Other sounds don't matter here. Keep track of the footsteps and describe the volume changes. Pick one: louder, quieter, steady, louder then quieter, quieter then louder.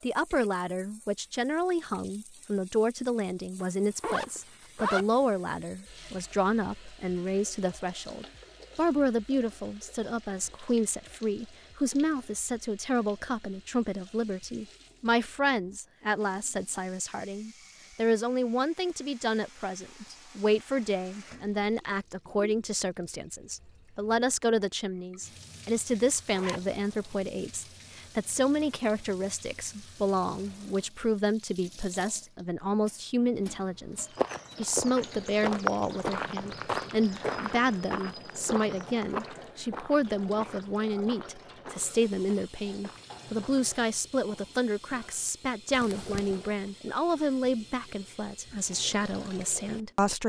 quieter.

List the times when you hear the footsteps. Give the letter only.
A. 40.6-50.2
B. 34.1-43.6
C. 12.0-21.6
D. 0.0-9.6
B.